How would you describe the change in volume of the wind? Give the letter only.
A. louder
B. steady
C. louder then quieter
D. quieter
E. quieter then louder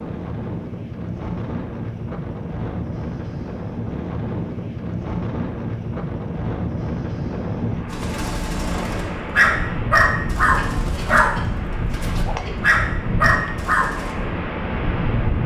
B.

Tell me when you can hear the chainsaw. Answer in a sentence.
The chainsaw can't be heard in this clip.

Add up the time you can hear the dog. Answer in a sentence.
The dog can be heard for 6 seconds in total.